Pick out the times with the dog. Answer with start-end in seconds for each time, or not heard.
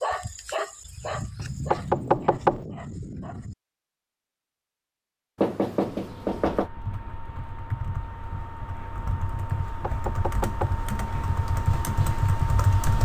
0.0-3.5.